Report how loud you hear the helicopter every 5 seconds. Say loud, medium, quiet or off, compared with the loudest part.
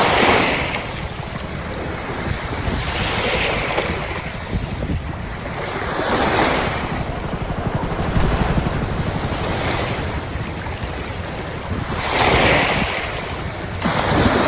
medium, loud, medium.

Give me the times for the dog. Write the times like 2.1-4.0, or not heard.
not heard.